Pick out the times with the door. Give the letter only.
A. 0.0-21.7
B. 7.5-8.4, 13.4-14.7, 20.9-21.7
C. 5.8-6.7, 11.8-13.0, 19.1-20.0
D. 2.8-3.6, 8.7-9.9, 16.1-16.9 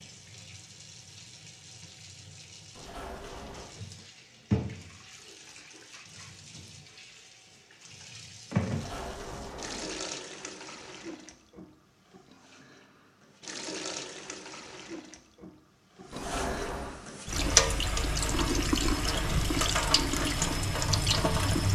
D.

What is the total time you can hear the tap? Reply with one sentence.
The tap can be heard for 22 seconds in total.